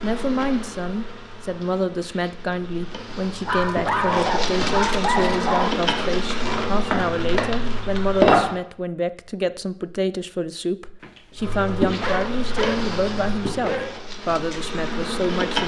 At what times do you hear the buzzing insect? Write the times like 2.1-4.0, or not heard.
0.0-8.6, 11.3-15.6.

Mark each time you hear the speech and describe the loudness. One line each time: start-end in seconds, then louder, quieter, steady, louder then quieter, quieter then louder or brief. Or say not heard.
0.0-15.6 steady.